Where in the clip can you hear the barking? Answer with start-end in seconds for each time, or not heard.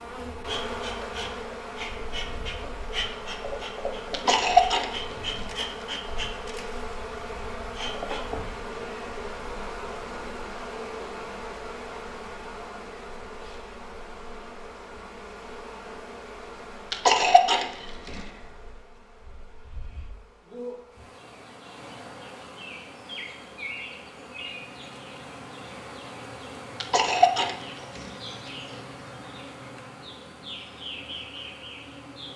not heard.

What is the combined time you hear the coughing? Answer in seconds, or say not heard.
4 s.